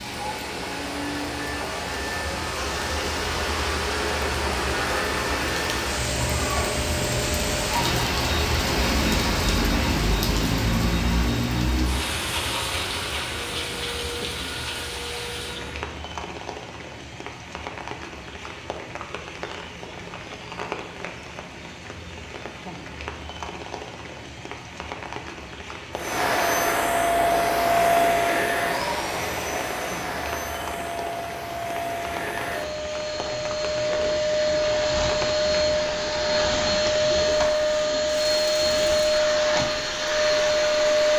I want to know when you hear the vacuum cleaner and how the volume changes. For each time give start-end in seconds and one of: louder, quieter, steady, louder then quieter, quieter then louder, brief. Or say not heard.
0.0-15.9 quieter
25.9-41.1 quieter then louder.